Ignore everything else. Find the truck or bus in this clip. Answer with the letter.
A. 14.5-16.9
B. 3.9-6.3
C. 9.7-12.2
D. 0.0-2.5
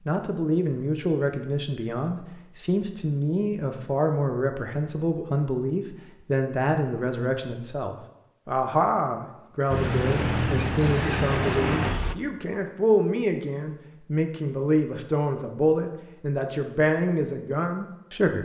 C.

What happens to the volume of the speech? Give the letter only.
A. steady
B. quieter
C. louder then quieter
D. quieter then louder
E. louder
A.